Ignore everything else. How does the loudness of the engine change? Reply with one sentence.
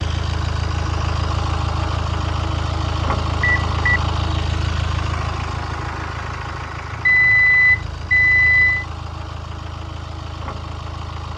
The volume of the engine goes down.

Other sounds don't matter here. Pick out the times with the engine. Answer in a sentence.
The engine can be heard from 0.0 to 11.3 s.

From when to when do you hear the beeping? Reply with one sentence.
You can hear the beeping from 3.4 to 3.9 s and from 6.9 to 8.8 s.